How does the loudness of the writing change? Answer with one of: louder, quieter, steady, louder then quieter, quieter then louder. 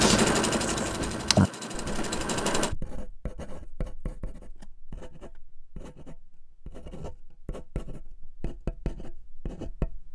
quieter then louder.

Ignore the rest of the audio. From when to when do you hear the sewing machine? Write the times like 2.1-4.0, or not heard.
0.0-2.8.